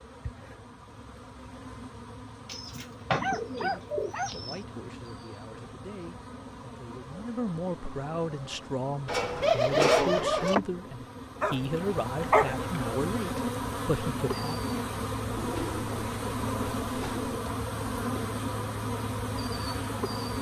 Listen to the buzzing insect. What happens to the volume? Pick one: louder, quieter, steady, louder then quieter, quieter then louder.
louder.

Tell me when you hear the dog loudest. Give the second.
12 s.